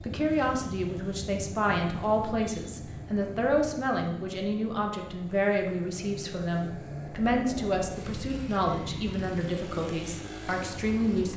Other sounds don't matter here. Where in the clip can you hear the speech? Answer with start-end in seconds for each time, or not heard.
0.1-11.3.